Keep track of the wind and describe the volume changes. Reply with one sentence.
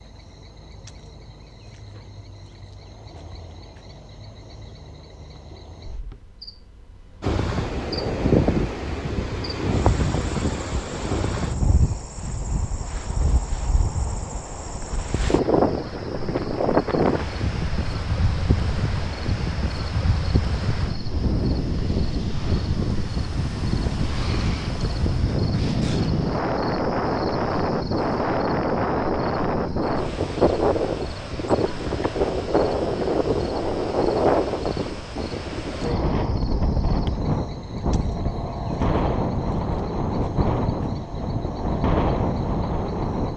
The loudness of the wind stays about the same.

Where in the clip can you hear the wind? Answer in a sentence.
The wind can be heard from 7.2 to 43.3 s.